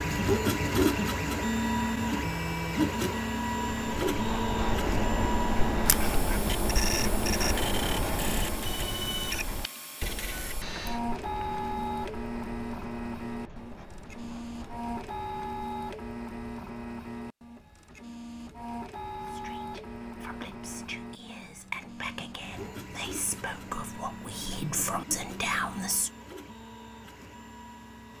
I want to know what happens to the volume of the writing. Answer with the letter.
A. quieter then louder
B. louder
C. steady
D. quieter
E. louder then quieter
D.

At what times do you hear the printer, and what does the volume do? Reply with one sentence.
You can hear the printer from 0.0 to 28.1 s, getting quieter.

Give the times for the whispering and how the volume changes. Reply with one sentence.
The whispering can be heard from 19.2 to 26.1 s, getting louder.